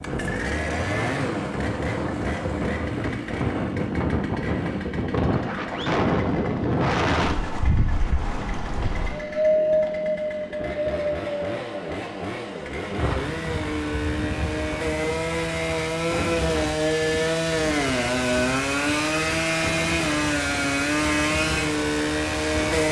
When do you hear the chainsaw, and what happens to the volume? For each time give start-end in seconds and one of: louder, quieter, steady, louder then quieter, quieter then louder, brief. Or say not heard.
0.0-22.8 quieter then louder.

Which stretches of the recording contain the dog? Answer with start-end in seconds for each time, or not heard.
not heard.